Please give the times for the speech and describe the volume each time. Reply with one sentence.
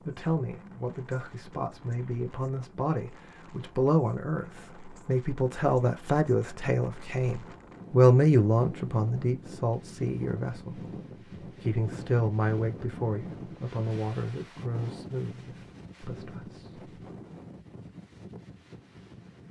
The speech can be heard from 0.0 to 16.9 s, getting louder then quieter.